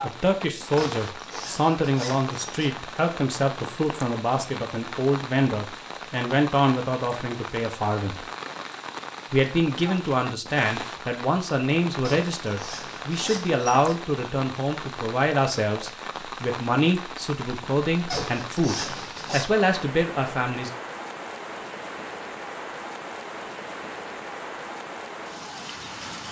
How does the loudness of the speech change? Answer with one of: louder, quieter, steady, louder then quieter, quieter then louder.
steady.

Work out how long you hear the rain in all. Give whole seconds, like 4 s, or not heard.
26 s.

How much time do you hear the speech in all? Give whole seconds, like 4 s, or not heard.
20 s.